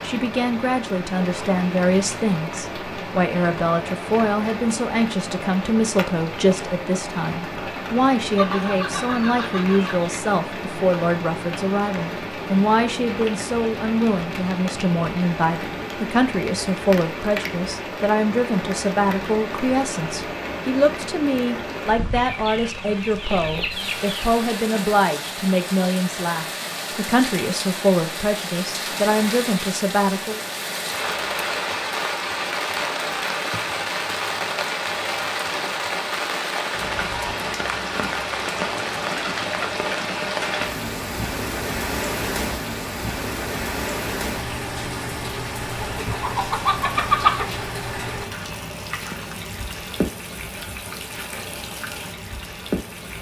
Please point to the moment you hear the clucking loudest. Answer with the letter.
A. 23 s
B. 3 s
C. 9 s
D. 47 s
D.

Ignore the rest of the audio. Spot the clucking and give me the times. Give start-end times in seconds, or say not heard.
8.3-10.1, 22.1-24.3, 45.8-47.5.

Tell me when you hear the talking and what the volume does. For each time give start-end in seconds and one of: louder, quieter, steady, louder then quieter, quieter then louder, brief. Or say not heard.
0.0-30.4 steady.